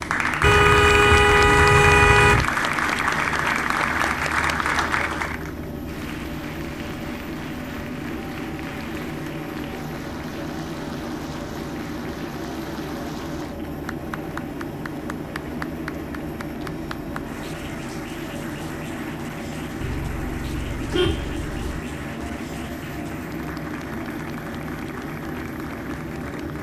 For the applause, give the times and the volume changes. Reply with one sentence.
The applause can be heard from 0.0 to 26.5 s, getting quieter.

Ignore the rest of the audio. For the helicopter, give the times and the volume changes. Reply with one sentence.
You can hear the helicopter from 0.0 to 26.5 s, at a steady volume.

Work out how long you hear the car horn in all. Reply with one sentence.
You can hear the car horn for 4 seconds altogether.